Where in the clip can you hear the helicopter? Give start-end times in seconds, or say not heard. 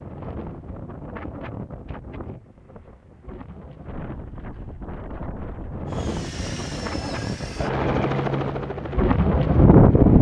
5.8-10.1.